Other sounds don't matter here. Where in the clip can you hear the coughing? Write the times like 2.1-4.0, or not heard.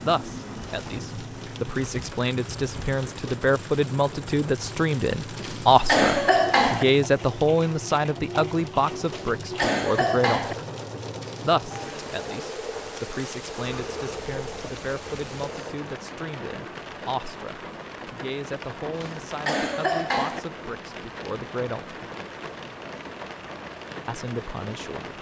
5.3-6.8, 9.1-10.6, 18.9-20.4.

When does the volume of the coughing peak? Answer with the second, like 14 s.
6 s.